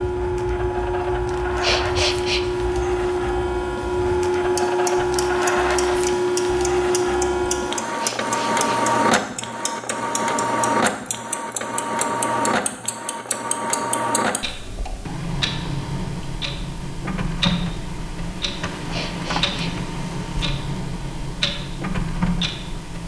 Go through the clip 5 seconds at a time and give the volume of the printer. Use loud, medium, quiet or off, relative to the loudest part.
loud, loud, loud, medium, medium.